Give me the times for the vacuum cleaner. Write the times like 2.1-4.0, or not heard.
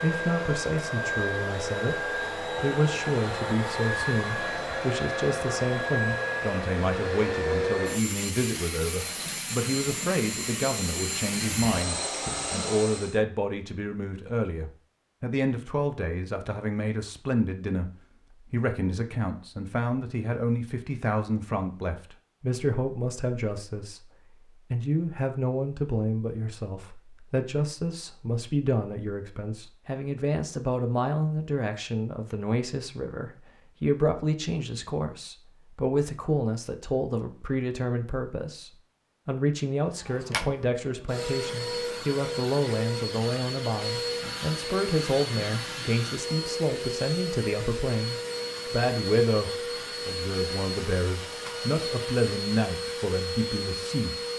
0.0-13.2, 40.0-54.3.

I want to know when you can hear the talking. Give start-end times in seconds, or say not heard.
0.0-54.2.